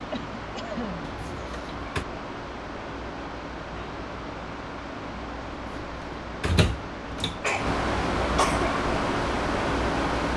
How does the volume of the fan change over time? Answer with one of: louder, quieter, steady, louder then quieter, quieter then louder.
louder.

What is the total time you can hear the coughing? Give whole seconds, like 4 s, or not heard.
2 s.